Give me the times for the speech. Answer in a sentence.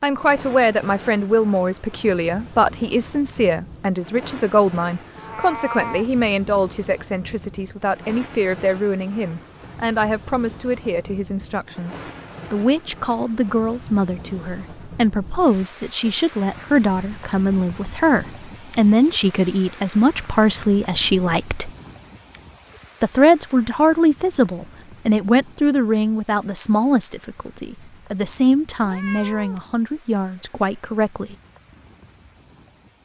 You can hear the speech from 0.0 to 21.7 s and from 23.0 to 31.4 s.